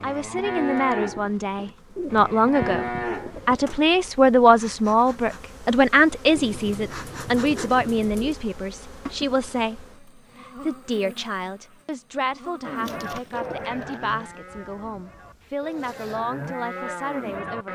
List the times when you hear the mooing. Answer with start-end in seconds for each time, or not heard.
0.0-3.8, 12.6-17.7.